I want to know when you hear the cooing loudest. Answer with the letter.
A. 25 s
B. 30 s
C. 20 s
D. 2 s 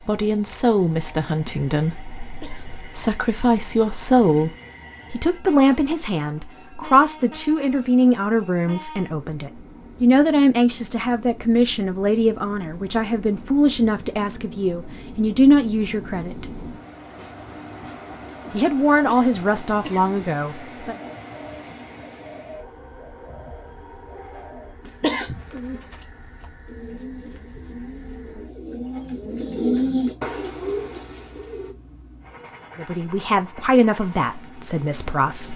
B.